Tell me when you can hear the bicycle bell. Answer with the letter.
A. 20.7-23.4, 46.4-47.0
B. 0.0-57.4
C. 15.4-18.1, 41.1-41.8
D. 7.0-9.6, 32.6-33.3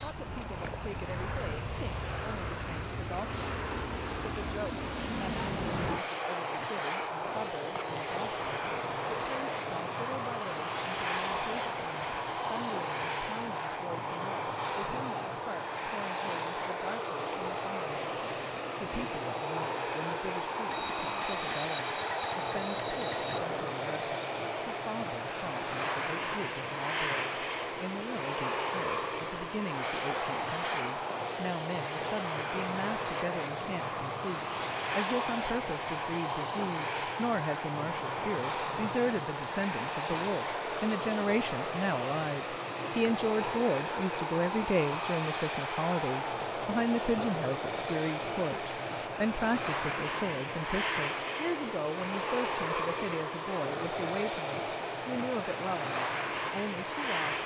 A.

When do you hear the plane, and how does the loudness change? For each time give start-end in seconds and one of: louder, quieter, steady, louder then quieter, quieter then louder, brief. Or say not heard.
0.0-57.4 steady.